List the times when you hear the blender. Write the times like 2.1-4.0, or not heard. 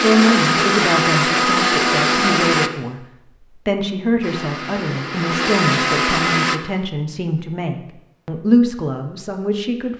0.0-2.7, 4.2-6.6.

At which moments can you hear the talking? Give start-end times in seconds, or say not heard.
0.0-3.0, 3.6-9.9.